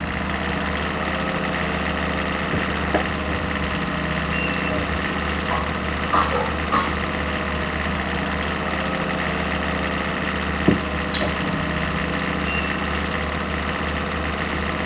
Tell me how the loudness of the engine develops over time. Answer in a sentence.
The loudness of the engine stays about the same.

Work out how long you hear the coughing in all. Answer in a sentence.
You can hear the coughing for 3 seconds altogether.